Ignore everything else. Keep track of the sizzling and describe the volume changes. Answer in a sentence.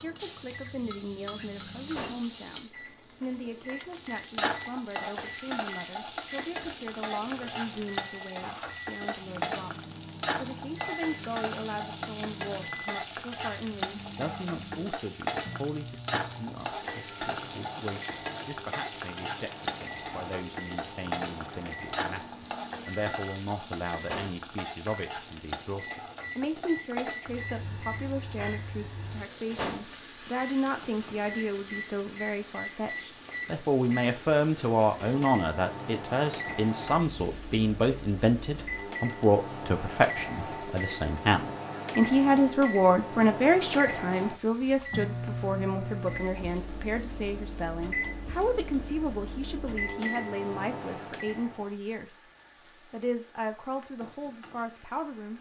The loudness of the sizzling goes down.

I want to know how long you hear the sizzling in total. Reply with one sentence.
You can hear the sizzling for 55 seconds altogether.